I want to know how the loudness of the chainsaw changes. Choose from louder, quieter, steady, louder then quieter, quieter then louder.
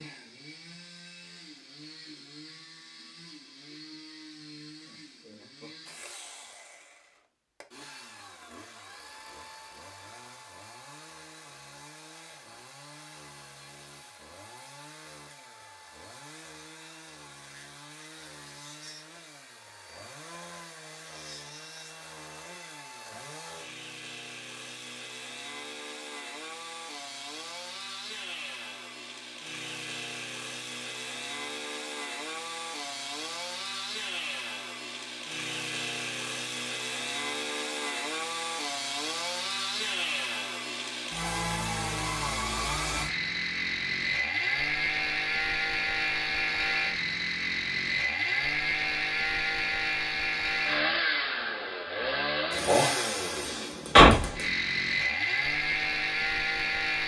louder.